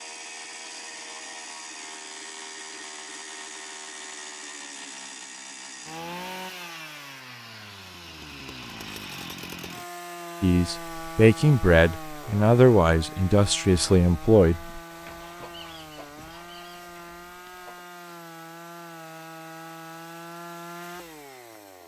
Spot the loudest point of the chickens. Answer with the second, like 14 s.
16 s.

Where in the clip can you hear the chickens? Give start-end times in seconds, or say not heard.
14.9-17.9.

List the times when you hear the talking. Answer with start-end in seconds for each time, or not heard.
10.4-14.8.